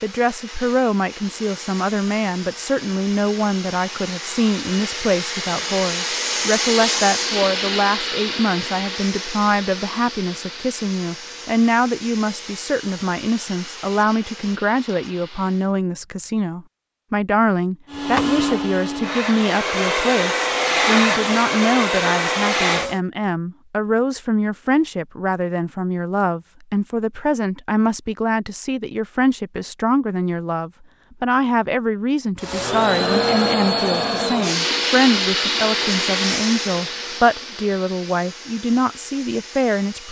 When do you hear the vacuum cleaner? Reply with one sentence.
The vacuum cleaner can be heard from 0.0 to 15.7 s, from 17.9 to 23.0 s and from 32.4 to 40.0 s.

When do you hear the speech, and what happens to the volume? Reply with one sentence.
The speech can be heard from 0.0 to 40.0 s, at a steady volume.